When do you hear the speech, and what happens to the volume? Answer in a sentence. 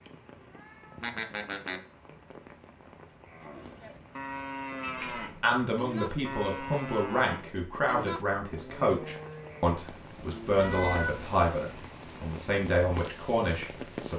You can hear the speech from 5.4 to 14.1 s, at a steady volume.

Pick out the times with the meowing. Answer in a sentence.
You can hear the meowing from 0.1 to 1.8 s, from 4.8 to 5.5 s and from 10.6 to 11.2 s.